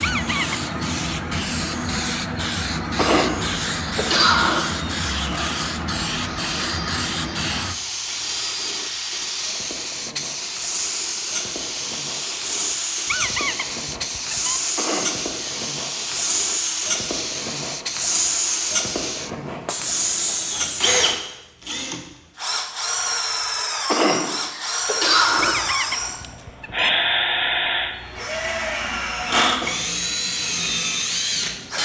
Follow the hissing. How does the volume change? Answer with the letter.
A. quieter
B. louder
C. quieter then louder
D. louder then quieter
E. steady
A.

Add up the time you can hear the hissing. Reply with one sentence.
You can hear the hissing for 32 seconds altogether.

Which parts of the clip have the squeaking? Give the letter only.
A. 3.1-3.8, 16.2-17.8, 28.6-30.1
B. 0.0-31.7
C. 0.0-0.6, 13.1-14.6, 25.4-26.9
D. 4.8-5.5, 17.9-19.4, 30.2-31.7
C.